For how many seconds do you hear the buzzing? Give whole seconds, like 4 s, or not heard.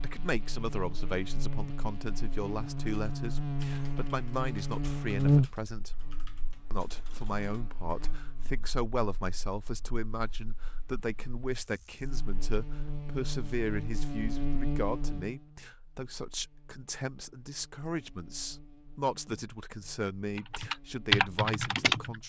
22 s.